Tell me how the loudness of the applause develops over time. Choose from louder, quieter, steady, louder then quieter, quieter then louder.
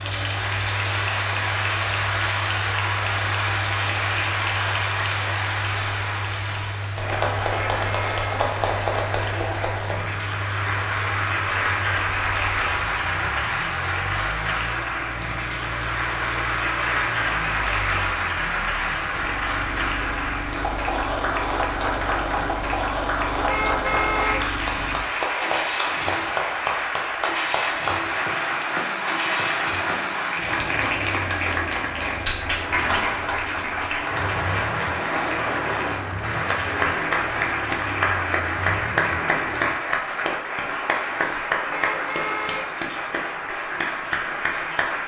steady.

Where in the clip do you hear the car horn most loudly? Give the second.
24 s.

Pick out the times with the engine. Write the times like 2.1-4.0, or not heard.
0.0-39.8.